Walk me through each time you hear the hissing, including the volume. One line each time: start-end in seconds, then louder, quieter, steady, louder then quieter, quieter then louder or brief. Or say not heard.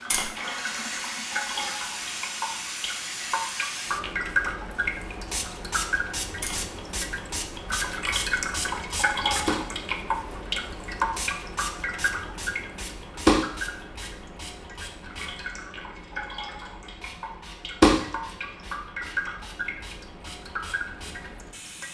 0.0-21.8 quieter.